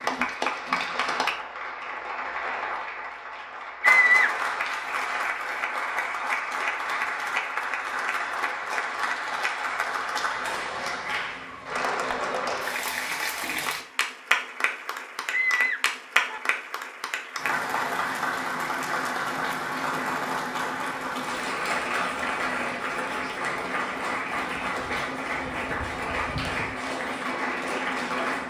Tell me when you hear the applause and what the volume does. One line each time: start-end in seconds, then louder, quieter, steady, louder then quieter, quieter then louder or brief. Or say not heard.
0.0-28.4 steady.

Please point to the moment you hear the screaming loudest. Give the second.
4 s.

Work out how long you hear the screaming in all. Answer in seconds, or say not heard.
2 s.